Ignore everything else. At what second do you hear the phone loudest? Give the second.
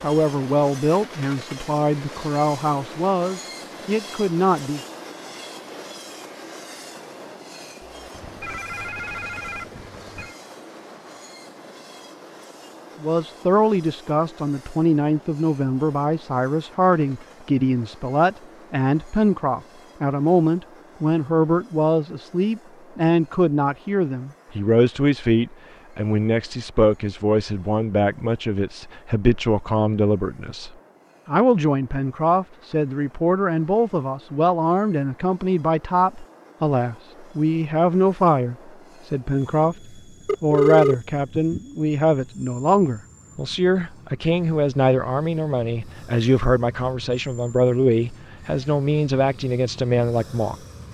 41 s.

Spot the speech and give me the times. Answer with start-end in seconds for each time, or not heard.
0.0-4.8, 13.0-50.8.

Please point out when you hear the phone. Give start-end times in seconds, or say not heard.
8.2-10.3, 40.2-41.6.